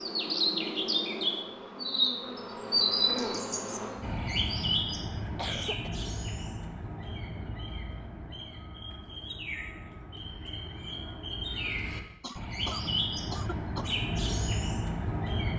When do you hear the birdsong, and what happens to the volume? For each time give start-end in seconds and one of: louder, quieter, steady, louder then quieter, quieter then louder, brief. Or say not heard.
0.0-15.5 quieter then louder.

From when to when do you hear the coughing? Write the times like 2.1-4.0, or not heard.
5.2-5.9, 12.2-13.9.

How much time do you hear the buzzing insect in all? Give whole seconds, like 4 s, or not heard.
4 s.